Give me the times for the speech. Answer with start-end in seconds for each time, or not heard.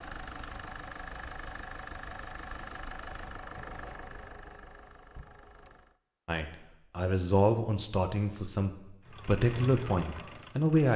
6.2-10.9.